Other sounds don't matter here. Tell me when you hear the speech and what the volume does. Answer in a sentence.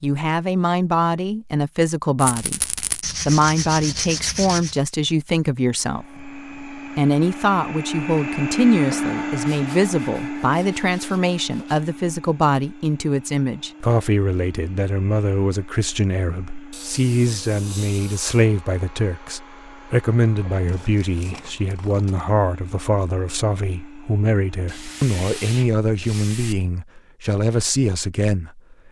The speech can be heard from 0.0 to 28.8 s, at a steady volume.